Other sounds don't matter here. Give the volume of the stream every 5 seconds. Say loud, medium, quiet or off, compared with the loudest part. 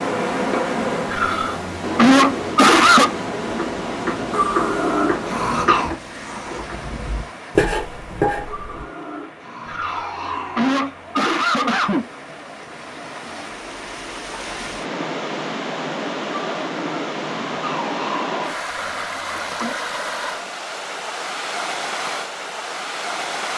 loud, medium, medium, loud, loud.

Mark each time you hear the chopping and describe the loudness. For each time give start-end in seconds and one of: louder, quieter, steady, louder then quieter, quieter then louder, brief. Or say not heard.
3.5-8.8 quieter then louder.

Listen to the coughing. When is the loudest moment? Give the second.
3 s.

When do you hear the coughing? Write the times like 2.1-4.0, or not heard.
1.1-3.1, 9.7-12.1, 18.7-19.8.